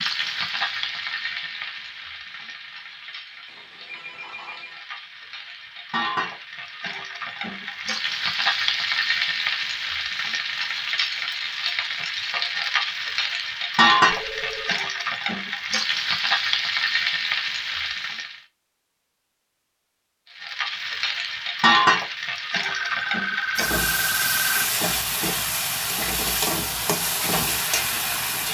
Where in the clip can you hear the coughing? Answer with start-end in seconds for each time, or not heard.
not heard.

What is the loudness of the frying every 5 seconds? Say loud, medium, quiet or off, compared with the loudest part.
medium, loud, loud, loud, loud, loud.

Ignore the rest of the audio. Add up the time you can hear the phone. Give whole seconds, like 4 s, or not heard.
4 s.